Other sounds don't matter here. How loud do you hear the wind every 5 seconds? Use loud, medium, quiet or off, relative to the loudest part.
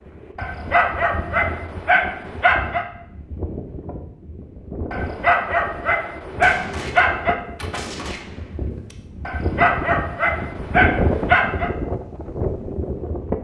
medium, medium, loud.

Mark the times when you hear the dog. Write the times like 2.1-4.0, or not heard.
0.3-2.9, 4.9-7.3, 9.2-11.7.